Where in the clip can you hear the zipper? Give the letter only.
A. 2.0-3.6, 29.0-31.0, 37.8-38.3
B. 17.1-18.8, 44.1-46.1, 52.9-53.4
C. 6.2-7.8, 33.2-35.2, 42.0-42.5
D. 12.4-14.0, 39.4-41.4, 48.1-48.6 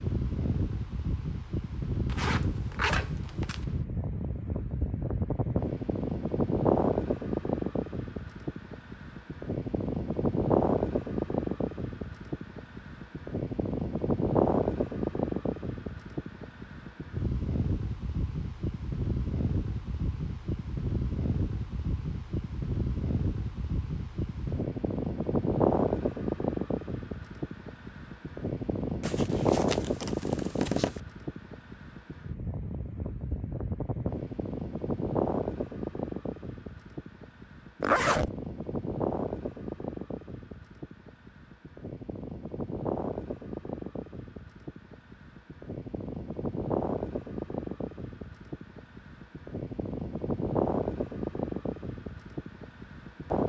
A.